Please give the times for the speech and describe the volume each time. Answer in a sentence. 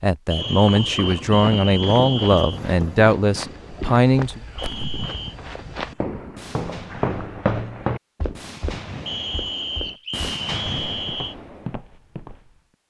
You can hear the speech from 0.0 to 4.4 s, at a steady volume.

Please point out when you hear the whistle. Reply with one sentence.
The whistle can be heard from 0.3 to 2.6 s, from 4.5 to 5.3 s and from 9.1 to 11.3 s.